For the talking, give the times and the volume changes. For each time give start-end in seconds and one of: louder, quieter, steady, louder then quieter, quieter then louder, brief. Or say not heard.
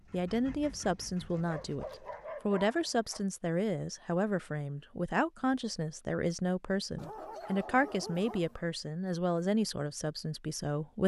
0.1-1.9 brief
2.5-11.0 steady.